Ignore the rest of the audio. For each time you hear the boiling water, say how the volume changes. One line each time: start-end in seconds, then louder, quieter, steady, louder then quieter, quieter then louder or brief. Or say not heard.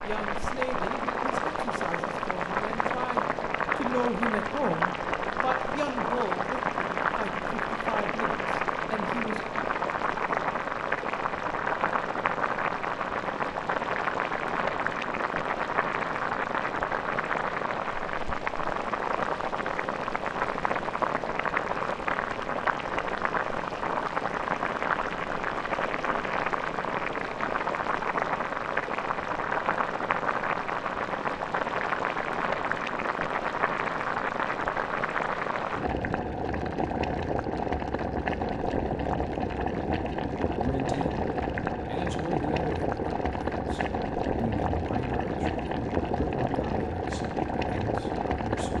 0.0-48.7 steady.